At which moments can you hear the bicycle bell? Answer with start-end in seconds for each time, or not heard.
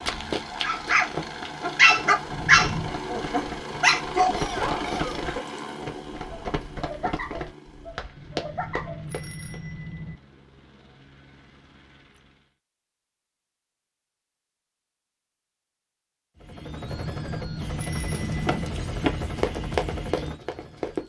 2.3-3.0, 8.2-10.2, 17.1-18.7.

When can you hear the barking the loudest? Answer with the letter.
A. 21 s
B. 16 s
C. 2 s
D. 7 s
C.